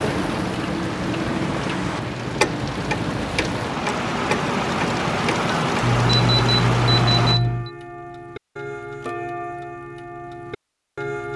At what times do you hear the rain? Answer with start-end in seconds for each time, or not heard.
0.0-7.4.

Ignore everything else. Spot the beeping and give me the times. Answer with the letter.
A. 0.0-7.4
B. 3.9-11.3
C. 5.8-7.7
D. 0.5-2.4
C.